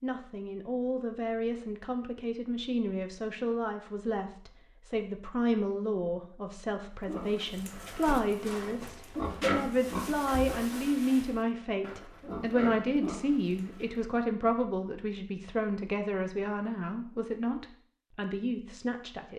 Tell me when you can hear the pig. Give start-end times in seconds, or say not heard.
7.0-14.1.